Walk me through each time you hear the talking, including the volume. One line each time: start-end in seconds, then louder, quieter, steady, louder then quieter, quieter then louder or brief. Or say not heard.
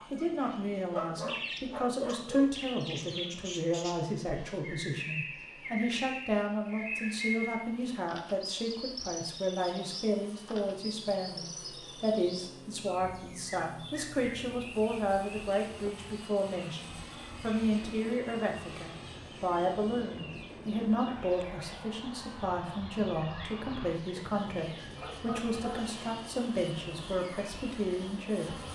0.1-28.7 steady.